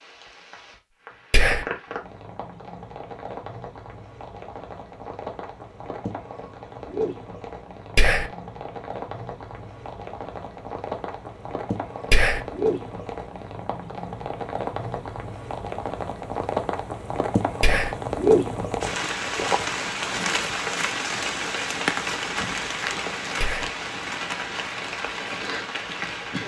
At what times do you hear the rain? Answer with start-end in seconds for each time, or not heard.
0.0-26.4.